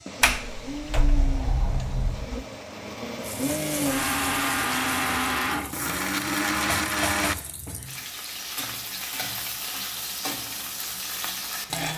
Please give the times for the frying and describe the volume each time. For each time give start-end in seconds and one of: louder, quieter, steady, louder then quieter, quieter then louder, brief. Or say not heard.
0.0-11.9 louder.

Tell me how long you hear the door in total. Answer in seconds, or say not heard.
2 s.